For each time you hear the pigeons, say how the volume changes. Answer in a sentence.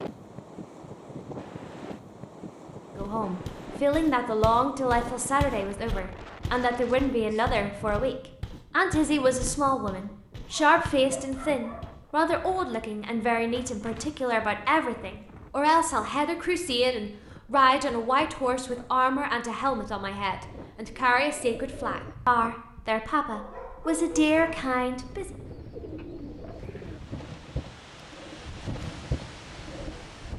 You can hear the pigeons briefly from 20.4 to 22.1 s; and from 25.4 to 30.3 s, getting louder.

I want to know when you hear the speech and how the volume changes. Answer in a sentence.
You can hear the speech from 3.0 to 25.4 s, at a steady volume.